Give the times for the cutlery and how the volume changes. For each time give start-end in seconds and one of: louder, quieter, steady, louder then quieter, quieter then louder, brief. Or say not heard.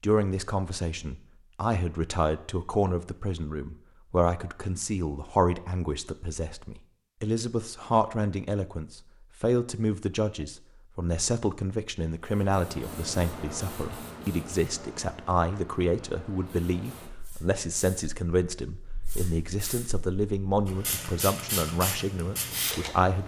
not heard.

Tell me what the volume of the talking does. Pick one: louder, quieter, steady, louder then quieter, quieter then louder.
steady.